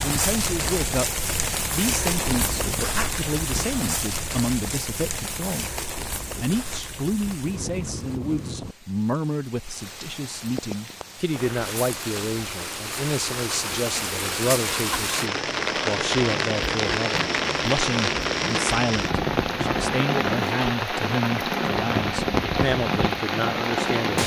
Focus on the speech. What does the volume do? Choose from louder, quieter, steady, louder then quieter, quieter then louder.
steady.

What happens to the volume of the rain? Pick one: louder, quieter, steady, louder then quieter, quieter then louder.
quieter then louder.